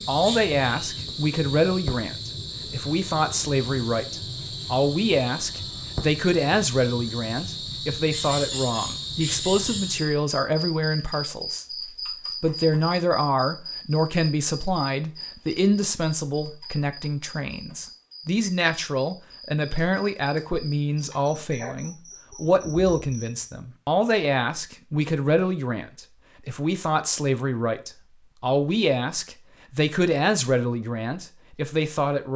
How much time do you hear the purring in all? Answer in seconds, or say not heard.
not heard.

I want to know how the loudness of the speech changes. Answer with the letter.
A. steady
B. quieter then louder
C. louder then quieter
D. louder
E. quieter
A.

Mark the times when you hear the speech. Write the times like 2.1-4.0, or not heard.
0.1-32.3.